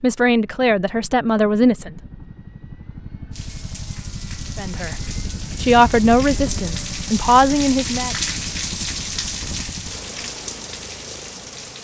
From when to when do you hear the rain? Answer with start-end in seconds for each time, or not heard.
3.3-11.7.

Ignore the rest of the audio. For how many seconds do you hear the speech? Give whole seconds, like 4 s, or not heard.
5 s.